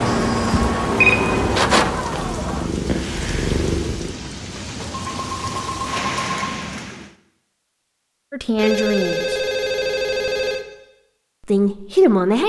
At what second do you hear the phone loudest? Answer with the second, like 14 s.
1 s.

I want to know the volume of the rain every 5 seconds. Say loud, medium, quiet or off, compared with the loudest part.
loud, medium, off.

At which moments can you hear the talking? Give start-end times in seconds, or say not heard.
8.3-9.3, 11.4-12.4.